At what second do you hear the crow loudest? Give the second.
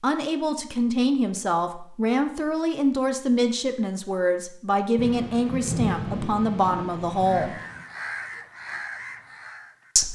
8 s.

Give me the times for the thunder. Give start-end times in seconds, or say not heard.
5.0-7.8.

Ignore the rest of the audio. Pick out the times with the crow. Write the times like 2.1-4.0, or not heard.
7.2-9.9.